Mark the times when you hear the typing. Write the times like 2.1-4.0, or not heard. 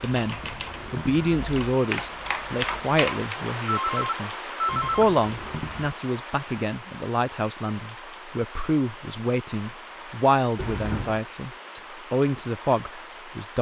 0.0-3.4.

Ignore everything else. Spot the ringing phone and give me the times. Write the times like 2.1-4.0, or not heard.
3.6-5.0.